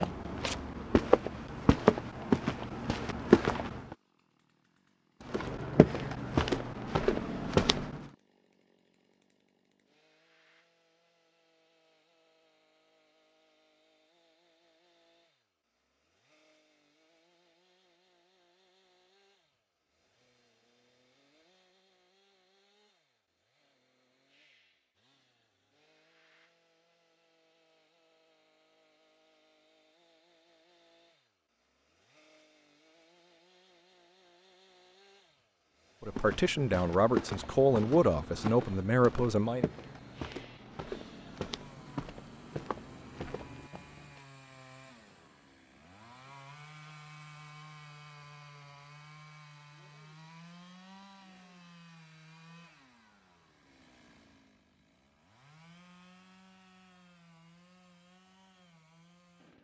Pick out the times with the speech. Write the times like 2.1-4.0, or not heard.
36.0-39.6.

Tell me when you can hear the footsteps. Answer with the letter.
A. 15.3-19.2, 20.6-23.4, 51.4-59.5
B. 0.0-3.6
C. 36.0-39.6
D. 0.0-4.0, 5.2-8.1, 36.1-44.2
D.